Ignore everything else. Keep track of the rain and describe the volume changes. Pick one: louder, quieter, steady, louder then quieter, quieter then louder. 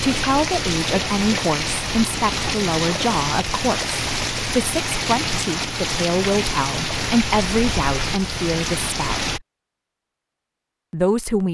steady.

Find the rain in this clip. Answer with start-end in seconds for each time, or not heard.
0.0-9.4.